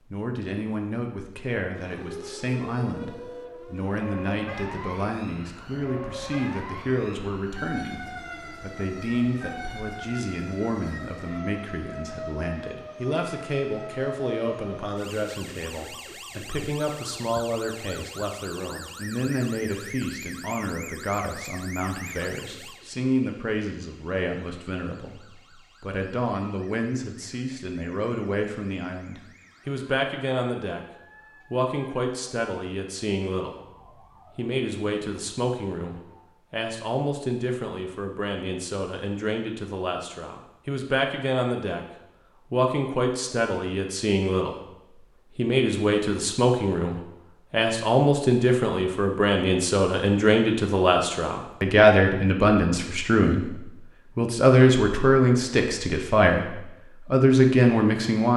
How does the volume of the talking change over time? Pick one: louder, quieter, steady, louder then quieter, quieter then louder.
louder.